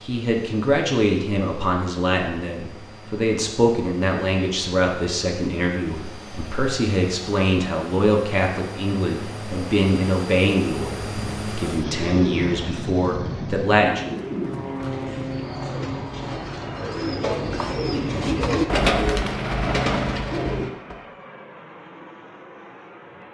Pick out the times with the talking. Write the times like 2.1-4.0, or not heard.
0.0-14.1.